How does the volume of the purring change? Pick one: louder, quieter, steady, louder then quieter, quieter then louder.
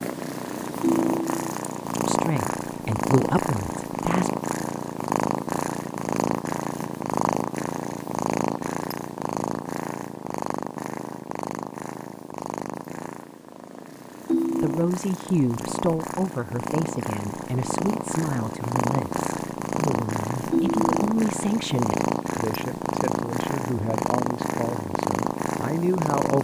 quieter then louder.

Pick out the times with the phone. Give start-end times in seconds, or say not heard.
0.8-1.5, 14.2-14.9, 20.5-21.0.